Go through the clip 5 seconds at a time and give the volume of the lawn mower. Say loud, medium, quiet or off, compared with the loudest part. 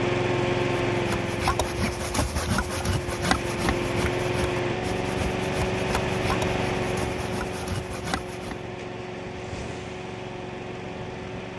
loud, loud, medium.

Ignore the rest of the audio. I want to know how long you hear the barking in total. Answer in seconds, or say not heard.
not heard.